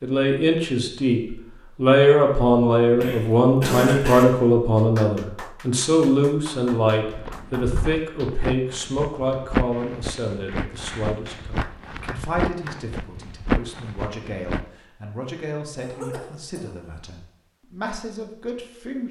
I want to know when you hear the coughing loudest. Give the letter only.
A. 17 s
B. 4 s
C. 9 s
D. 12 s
B.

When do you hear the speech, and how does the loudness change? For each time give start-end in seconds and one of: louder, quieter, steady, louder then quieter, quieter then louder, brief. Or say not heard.
0.0-19.0 quieter.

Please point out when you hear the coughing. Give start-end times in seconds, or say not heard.
3.0-4.2, 15.8-16.6.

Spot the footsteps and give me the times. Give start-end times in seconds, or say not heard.
7.1-14.7.